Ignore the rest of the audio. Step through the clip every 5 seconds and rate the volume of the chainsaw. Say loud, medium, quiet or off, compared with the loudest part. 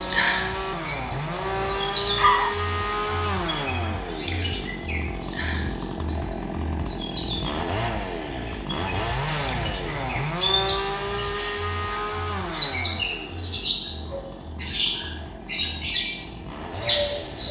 loud, loud, loud, medium.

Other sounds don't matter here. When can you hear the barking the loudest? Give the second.
2 s.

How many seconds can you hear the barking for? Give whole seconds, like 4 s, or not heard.
2 s.